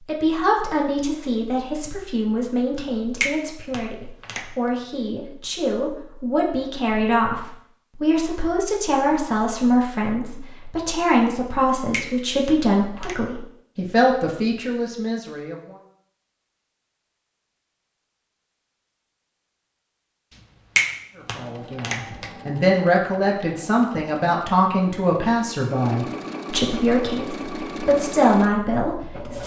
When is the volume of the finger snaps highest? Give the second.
21 s.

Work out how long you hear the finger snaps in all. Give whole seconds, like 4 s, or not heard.
4 s.